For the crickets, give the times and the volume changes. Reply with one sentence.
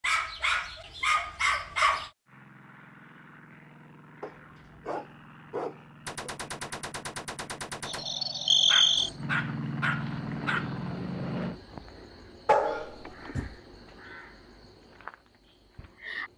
The crickets can be heard from 7.8 to 16.3 s, getting quieter.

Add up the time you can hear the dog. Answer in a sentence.
You can hear the dog for 7 seconds altogether.